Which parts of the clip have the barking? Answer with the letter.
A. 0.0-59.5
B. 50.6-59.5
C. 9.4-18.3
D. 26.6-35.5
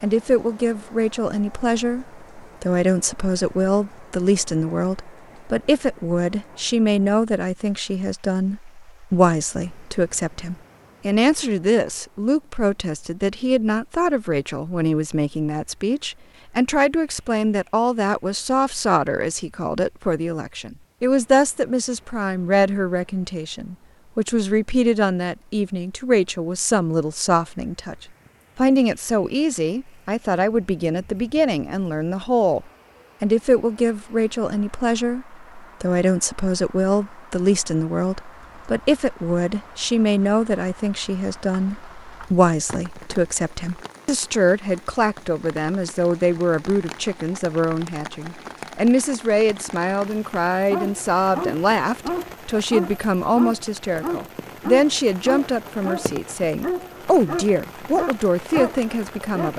B.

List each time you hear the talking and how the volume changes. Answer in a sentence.
The talking can be heard from 0.0 to 59.5 s, at a steady volume.